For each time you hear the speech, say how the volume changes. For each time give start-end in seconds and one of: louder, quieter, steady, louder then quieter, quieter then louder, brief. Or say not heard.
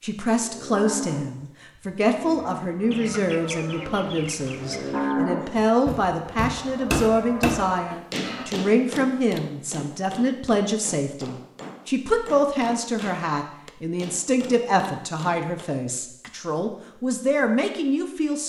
0.0-18.4 steady.